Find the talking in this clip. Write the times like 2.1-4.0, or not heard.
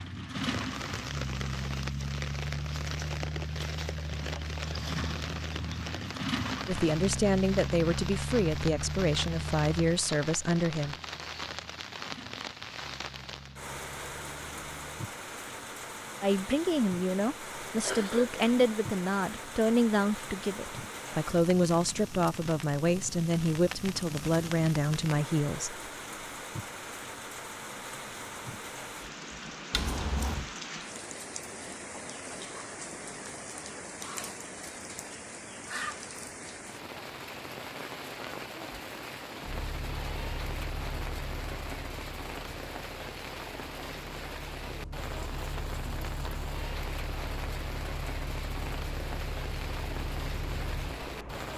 6.7-10.9, 16.2-25.8.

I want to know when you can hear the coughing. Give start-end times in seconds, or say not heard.
17.8-18.6, 29.7-30.4.